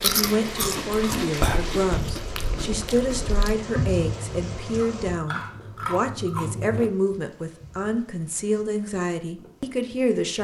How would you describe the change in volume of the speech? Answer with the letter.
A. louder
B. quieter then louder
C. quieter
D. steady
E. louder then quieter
D.